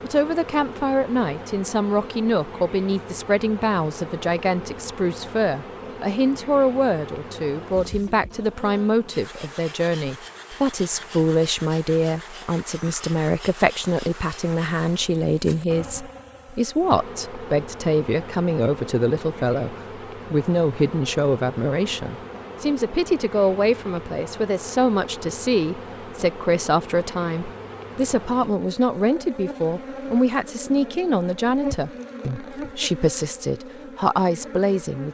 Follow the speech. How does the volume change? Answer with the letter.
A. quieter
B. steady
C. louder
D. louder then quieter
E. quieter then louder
B.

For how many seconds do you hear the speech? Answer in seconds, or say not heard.
35 s.